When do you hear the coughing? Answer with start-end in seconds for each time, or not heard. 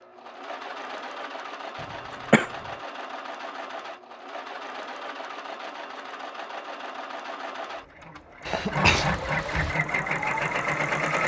1.8-2.5, 8.4-9.8.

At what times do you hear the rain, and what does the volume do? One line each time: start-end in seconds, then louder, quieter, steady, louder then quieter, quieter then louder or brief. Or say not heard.
not heard.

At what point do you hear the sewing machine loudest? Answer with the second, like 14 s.
11 s.